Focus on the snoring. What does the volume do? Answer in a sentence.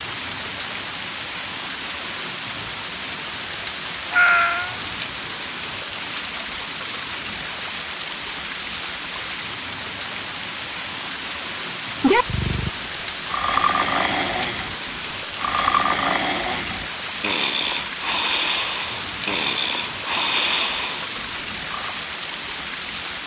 The volume of the snoring stays about the same.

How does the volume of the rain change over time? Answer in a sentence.
The loudness of the rain stays about the same.